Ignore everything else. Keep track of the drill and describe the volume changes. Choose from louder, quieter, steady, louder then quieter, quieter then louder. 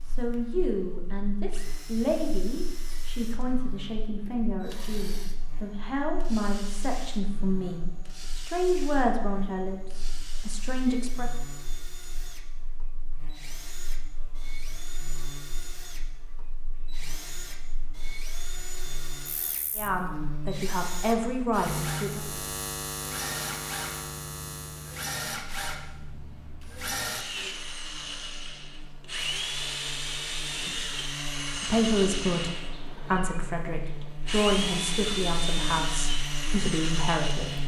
louder.